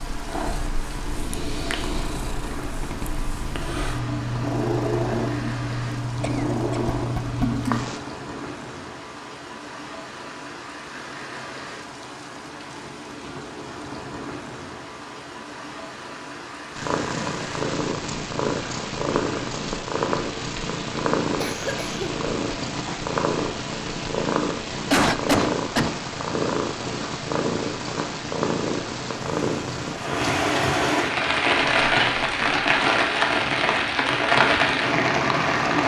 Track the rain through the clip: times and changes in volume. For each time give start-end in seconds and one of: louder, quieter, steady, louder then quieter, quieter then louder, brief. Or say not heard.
0.0-35.8 louder.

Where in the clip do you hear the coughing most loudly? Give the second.
25 s.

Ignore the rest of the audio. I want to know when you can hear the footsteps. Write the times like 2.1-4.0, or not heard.
not heard.